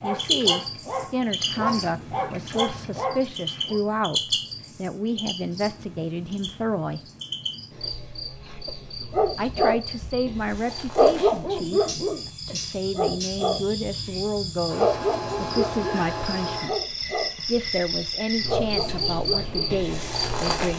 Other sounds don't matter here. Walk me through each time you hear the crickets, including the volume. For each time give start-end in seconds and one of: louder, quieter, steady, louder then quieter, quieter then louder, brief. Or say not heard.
0.0-20.7 quieter then louder.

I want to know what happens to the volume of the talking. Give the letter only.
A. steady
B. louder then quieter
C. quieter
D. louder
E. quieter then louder
A.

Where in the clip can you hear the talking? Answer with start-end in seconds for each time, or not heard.
0.0-7.0, 9.3-20.7.